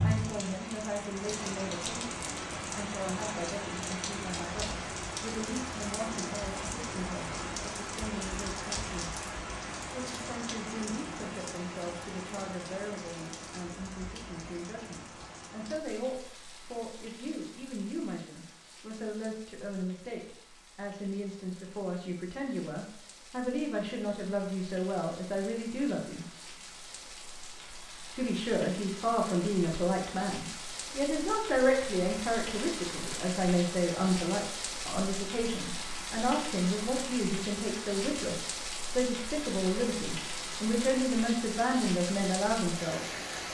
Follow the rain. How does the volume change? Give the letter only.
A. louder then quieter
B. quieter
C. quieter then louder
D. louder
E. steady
C.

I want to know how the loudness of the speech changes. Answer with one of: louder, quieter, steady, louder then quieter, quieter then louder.
louder.